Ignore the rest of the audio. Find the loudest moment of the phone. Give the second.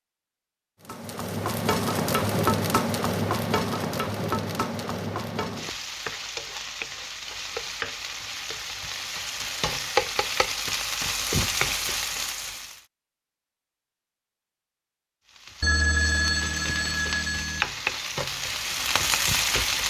16 s.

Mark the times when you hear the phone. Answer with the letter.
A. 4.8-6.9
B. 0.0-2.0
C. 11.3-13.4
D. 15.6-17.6
D.